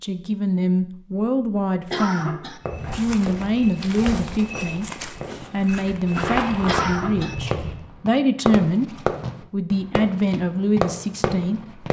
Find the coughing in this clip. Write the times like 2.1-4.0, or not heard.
1.9-2.6, 6.7-7.3.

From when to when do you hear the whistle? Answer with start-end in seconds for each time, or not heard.
not heard.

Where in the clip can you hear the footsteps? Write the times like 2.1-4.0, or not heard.
2.6-7.9.